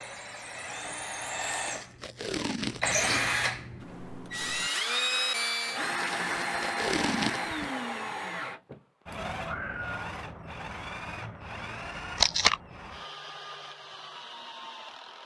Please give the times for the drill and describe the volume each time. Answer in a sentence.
The drill can be heard from 0.0 to 15.2 s, getting quieter.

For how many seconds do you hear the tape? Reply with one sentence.
The tape can be heard for 4 seconds in total.